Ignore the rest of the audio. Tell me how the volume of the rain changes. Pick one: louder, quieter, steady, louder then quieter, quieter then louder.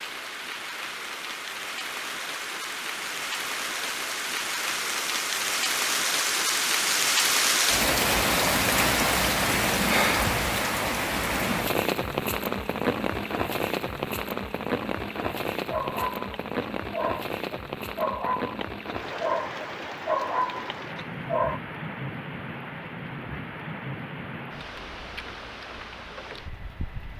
louder then quieter.